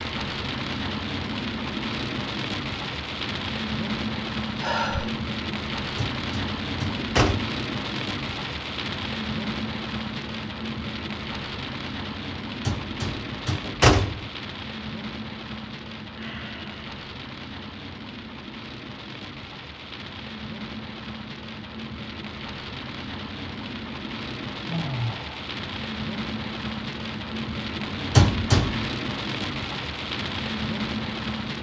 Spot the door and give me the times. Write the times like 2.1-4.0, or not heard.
6.0-7.6, 12.7-14.3, 28.1-28.9.